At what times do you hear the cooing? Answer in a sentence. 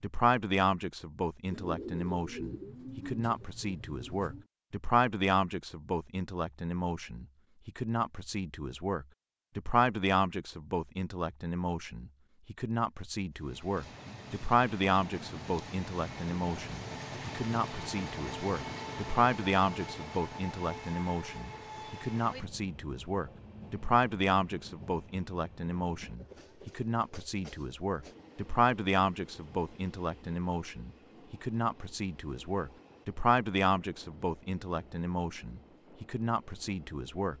You can hear the cooing from 1.5 to 4.5 s.